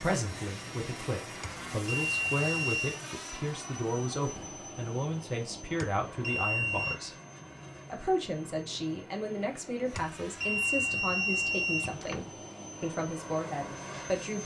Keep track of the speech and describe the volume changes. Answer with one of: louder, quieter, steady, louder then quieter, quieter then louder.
steady.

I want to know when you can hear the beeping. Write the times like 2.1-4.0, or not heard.
1.4-3.0, 5.8-7.0, 9.9-12.2.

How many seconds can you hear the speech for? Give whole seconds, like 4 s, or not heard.
14 s.